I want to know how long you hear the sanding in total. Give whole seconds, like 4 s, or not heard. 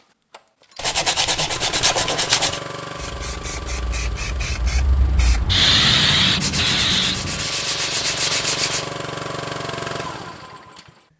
4 s.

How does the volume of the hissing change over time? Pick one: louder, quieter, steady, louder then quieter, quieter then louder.
louder then quieter.